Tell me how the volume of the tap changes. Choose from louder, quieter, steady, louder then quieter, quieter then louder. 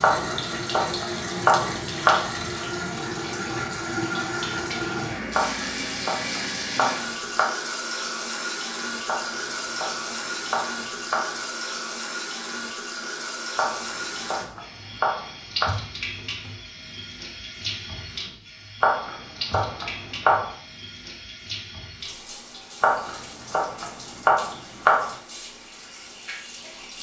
quieter.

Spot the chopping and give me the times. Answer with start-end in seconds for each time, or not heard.
0.0-2.2, 5.3-7.5, 9.1-11.4, 13.6-15.7, 18.8-20.5, 22.8-25.1.